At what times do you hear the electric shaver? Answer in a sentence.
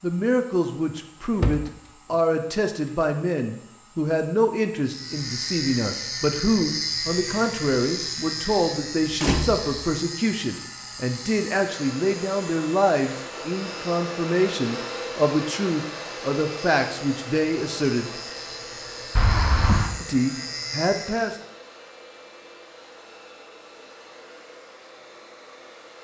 The electric shaver can be heard from 4.8 to 21.4 s.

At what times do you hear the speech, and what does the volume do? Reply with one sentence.
You can hear the speech from 0.0 to 18.1 s, at a steady volume; and briefly from 20.0 to 21.4 s.